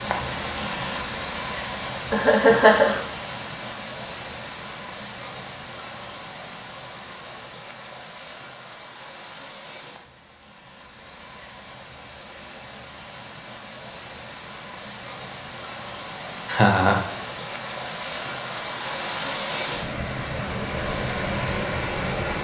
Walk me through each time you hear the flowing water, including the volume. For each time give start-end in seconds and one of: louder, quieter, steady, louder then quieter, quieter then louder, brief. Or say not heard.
0.0-22.3 quieter then louder.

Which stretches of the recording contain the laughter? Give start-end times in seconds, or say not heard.
2.1-3.0, 16.4-17.0.